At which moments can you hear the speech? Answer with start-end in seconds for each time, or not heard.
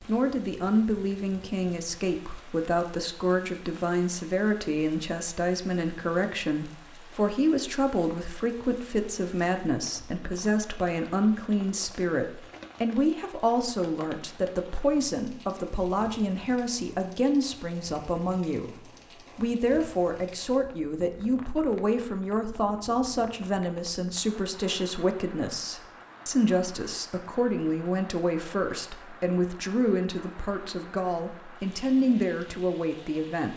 0.1-33.5.